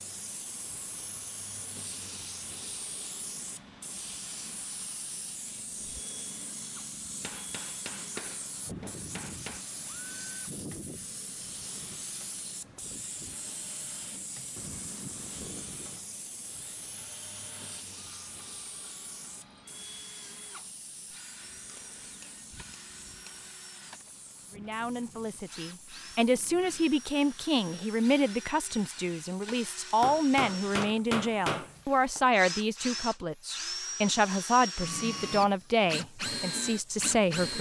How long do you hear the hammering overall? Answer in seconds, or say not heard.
7 s.